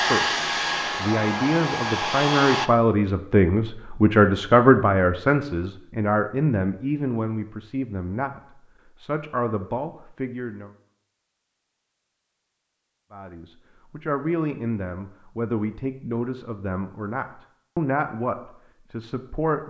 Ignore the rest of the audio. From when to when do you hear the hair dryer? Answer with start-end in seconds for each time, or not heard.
0.0-2.7.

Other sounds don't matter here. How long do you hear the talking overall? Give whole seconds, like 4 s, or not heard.
17 s.